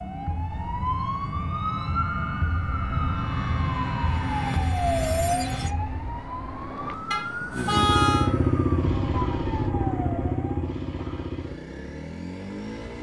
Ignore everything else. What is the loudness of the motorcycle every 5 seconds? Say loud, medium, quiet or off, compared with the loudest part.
off, loud, medium.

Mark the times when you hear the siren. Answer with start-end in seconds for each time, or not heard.
0.0-10.8.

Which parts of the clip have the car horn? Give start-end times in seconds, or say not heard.
7.1-8.3.